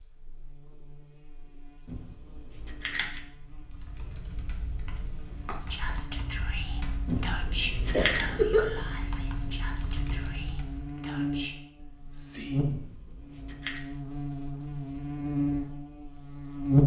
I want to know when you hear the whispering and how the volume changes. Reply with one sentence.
You can hear the whispering from 5.6 to 13.2 s, getting quieter.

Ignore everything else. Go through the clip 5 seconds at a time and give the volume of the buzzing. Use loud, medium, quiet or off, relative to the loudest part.
quiet, quiet, medium, loud.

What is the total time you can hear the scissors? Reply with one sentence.
You can hear the scissors for 4 seconds altogether.